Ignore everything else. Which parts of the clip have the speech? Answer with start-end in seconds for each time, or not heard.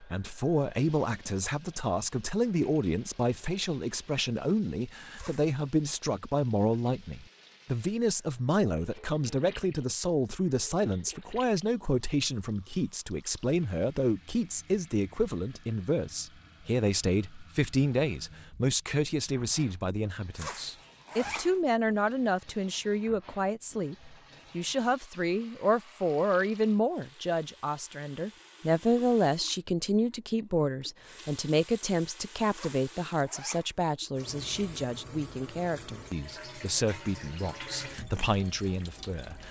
0.0-39.4.